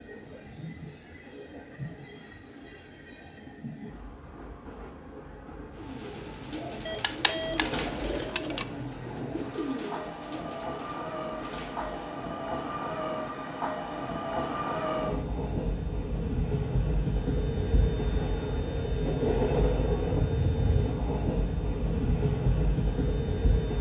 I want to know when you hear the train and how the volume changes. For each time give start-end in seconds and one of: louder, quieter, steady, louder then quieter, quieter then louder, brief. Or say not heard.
0.0-23.7 louder.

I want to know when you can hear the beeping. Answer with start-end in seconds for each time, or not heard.
6.8-8.7.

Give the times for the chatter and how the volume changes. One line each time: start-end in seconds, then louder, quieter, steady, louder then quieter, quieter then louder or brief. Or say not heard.
not heard.